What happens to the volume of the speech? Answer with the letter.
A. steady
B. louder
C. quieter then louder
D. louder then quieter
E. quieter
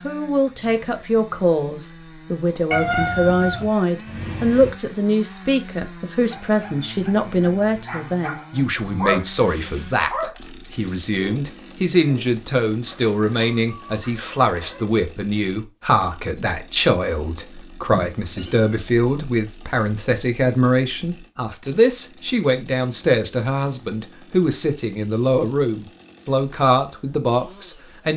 A.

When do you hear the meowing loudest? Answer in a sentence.
The volume of the meowing peaks at 3 seconds.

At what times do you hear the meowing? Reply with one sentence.
The meowing can be heard from 2.7 to 4.7 s and from 17.9 to 18.7 s.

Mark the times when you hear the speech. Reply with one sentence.
The speech can be heard from 0.0 to 28.1 s.